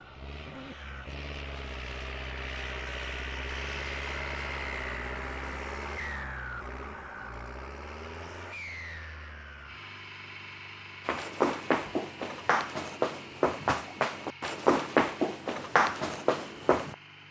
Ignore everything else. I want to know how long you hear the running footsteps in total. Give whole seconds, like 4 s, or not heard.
6 s.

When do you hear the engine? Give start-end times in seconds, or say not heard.
0.0-17.2.